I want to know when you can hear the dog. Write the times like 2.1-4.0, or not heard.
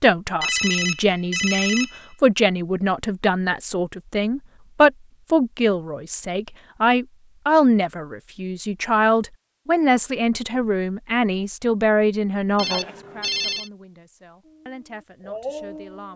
14.4-16.1.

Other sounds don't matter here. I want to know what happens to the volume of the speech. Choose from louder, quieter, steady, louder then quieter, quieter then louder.
quieter.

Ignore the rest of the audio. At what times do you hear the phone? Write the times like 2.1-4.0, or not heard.
0.4-2.0, 12.6-13.7.